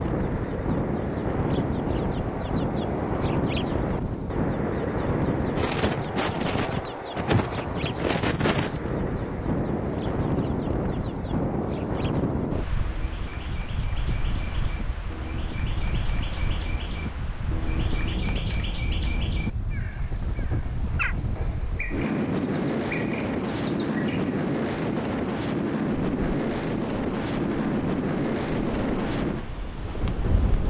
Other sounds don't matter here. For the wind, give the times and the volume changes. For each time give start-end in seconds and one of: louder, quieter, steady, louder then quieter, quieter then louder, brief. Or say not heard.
0.0-30.6 quieter then louder.